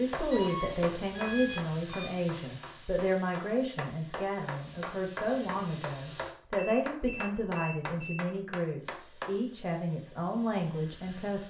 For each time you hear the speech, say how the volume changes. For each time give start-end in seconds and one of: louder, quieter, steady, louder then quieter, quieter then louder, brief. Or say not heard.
0.0-11.4 steady.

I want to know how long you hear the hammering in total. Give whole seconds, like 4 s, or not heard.
9 s.